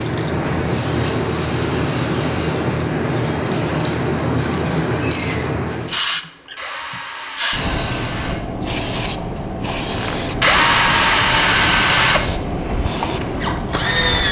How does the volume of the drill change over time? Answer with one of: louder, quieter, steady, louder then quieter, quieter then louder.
louder.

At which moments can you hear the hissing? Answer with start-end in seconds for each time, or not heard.
0.0-14.2.